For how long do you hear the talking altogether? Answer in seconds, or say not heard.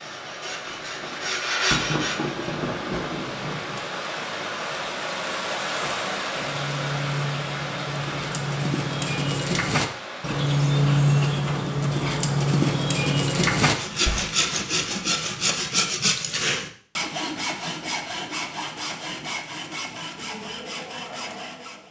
not heard.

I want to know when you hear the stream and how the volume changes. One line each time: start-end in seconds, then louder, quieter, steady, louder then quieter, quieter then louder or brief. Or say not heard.
0.0-11.3 louder then quieter.